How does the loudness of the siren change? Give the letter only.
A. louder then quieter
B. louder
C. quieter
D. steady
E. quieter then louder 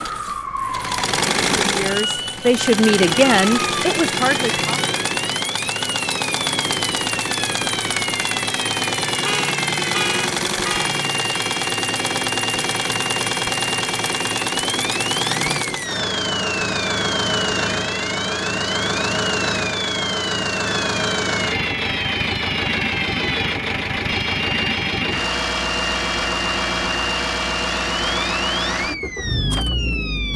D.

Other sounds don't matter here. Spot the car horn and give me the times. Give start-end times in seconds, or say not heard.
9.1-10.9.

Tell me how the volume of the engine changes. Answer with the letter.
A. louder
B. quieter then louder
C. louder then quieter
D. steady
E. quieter
D.